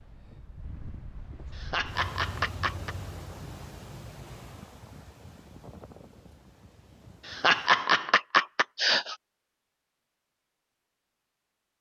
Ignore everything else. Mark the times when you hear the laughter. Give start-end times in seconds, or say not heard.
1.6-3.0, 7.2-9.2.